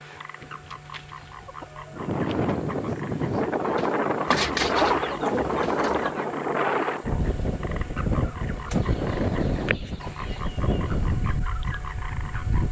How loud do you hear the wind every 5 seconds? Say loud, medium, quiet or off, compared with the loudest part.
loud, loud, medium.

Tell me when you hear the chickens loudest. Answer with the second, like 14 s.
5 s.